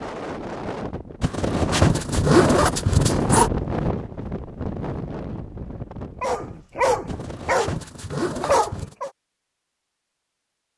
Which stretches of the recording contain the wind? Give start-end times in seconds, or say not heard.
0.0-7.4.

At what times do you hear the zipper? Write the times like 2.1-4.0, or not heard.
1.2-3.5, 7.0-8.9.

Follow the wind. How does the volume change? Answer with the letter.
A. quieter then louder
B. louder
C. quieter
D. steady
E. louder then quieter
E.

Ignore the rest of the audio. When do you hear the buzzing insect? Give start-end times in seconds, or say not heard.
not heard.